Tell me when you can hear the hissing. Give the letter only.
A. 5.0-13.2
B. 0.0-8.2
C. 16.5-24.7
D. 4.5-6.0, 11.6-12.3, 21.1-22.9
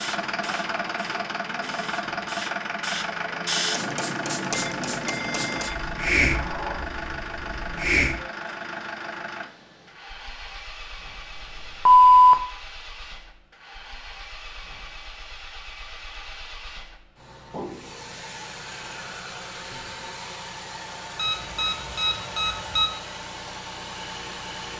B.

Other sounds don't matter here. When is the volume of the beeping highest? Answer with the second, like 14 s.
12 s.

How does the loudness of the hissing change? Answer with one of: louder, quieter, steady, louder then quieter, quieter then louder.
louder then quieter.